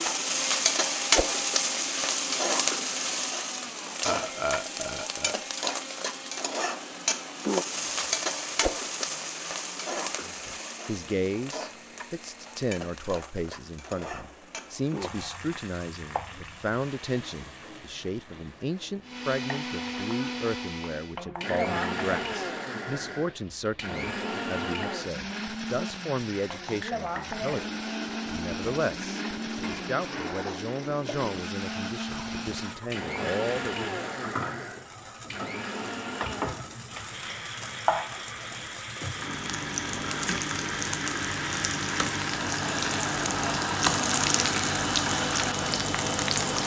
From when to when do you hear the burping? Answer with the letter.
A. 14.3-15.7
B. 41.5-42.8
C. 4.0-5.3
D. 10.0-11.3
C.